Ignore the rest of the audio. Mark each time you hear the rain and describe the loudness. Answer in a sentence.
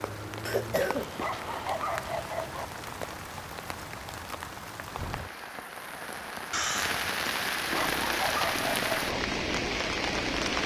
You can hear the rain from 0.0 to 10.6 s, getting louder.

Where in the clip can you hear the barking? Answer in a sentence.
You can hear the barking from 0.8 to 2.6 s and from 7.5 to 9.2 s.